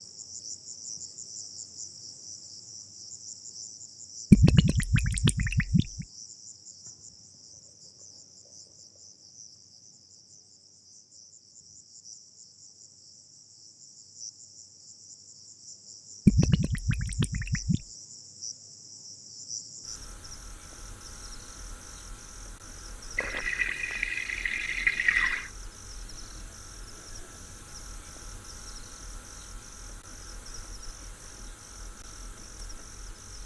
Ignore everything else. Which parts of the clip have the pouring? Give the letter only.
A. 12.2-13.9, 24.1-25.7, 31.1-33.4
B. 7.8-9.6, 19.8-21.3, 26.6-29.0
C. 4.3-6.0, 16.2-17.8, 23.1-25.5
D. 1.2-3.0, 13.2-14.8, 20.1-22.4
C.